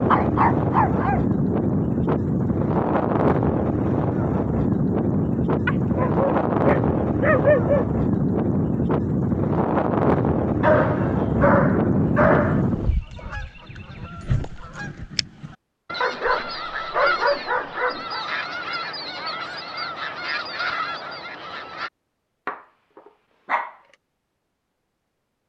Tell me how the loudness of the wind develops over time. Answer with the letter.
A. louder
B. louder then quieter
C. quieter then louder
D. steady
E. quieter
D.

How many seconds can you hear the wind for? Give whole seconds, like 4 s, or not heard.
13 s.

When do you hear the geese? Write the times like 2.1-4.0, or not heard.
12.4-21.9.